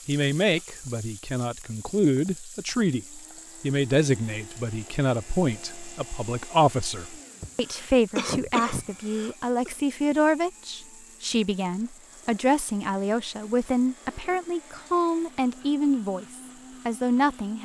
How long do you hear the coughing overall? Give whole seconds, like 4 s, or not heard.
2 s.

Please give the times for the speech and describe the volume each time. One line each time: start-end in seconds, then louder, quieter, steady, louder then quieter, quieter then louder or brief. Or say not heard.
0.1-17.5 steady.